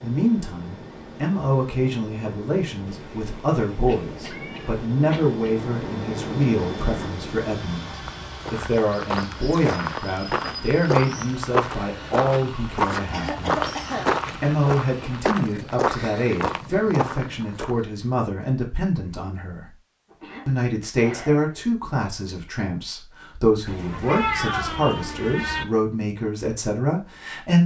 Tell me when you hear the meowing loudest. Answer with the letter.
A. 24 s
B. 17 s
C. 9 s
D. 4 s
A.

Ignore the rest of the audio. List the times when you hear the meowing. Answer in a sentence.
You can hear the meowing from 2.9 to 4.9 s and from 23.6 to 25.6 s.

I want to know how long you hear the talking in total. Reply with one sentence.
The talking can be heard for 26 seconds in total.